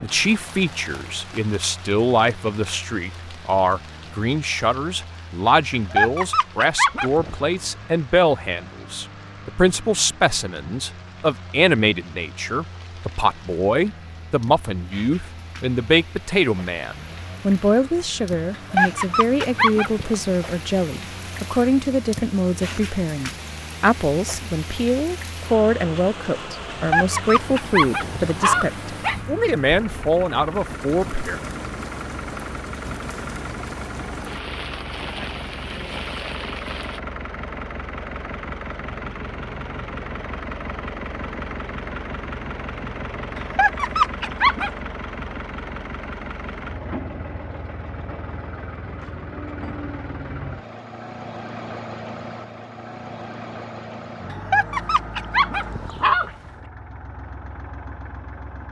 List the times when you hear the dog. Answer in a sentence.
The dog can be heard from 5.7 to 7.3 s, from 18.5 to 20.1 s, from 26.7 to 29.1 s, from 43.4 to 44.7 s and from 54.3 to 56.4 s.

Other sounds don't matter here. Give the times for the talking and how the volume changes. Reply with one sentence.
The talking can be heard from 0.0 to 31.4 s, at a steady volume.